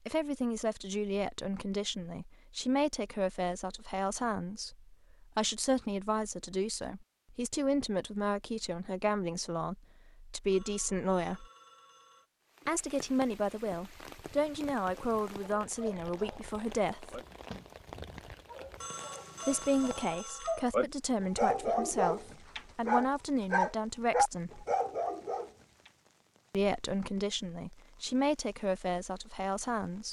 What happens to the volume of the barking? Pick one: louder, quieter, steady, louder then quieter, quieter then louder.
louder.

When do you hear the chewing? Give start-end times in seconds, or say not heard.
not heard.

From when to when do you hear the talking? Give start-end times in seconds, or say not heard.
0.1-11.4, 12.7-17.2, 19.4-24.6, 26.5-30.0.